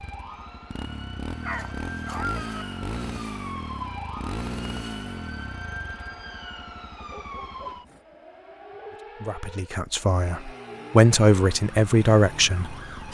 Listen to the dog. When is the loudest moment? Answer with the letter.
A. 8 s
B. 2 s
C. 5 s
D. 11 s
B.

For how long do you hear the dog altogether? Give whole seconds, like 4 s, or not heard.
3 s.